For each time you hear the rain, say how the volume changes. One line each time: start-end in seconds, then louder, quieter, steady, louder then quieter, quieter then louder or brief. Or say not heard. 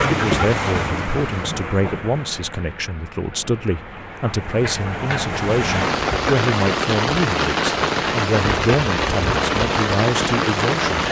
0.0-11.0 quieter then louder.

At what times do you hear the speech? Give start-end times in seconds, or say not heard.
0.1-11.0.